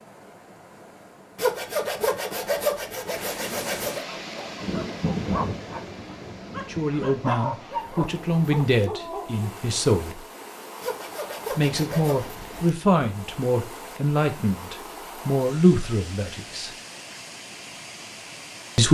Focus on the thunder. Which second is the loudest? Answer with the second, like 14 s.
5 s.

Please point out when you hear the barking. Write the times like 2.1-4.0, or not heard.
4.0-9.5.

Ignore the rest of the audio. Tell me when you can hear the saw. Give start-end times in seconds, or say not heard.
1.4-4.0, 10.8-12.3.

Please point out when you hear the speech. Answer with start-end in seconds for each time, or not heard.
6.7-10.2, 11.5-16.7.